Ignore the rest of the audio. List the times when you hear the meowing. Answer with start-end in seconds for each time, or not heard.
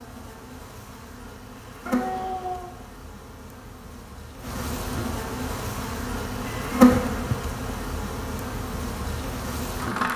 1.9-2.7, 6.5-7.3.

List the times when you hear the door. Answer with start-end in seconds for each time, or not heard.
not heard.